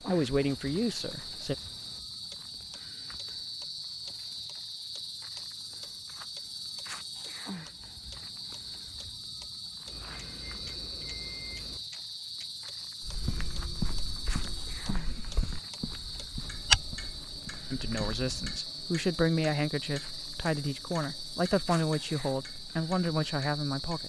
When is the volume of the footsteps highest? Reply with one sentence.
The volume of the footsteps peaks at 17 seconds.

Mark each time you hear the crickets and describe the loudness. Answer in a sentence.
You can hear the crickets from 0.0 to 24.0 s, at a steady volume.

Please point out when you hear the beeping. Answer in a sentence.
You can hear the beeping from 9.8 to 11.8 s.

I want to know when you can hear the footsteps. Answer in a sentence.
The footsteps can be heard from 13.0 to 18.6 s.